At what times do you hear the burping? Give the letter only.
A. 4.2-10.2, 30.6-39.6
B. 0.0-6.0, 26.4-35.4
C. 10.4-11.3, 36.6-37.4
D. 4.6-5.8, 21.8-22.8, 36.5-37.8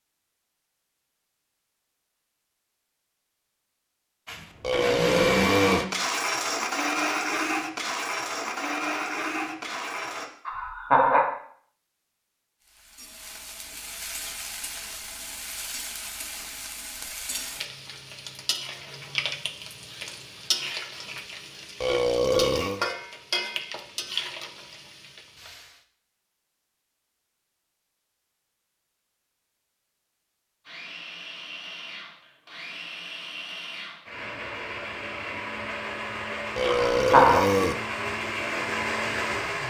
D.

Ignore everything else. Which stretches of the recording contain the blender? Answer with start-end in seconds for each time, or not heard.
4.2-10.2, 30.6-39.6.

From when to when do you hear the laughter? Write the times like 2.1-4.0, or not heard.
10.4-11.3, 36.6-37.4.